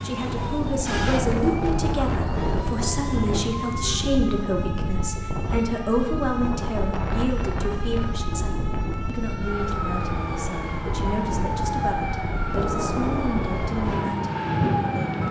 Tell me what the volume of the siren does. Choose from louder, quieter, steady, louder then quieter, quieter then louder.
quieter then louder.